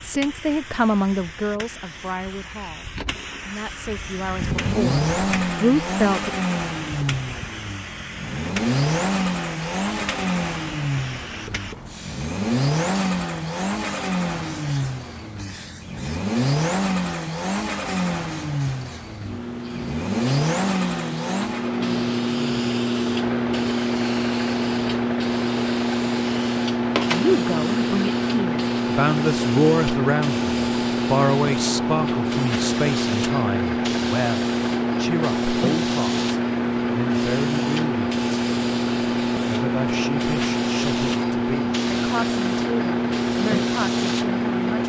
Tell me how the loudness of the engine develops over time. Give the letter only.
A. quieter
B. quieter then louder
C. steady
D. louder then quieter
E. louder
A.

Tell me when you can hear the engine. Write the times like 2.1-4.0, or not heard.
3.9-44.8.